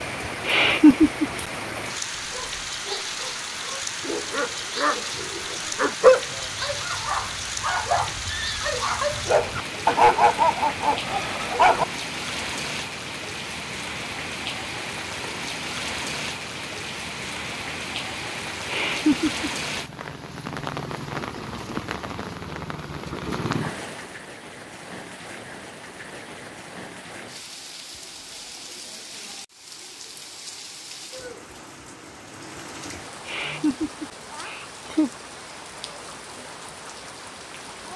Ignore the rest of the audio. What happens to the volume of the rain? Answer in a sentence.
The loudness of the rain goes down.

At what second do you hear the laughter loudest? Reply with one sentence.
The volume of the laughter peaks at 1 second.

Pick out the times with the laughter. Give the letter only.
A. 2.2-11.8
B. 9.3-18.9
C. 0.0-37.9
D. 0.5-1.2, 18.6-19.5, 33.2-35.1
D.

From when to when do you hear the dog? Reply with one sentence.
You can hear the dog from 2.2 to 11.8 s.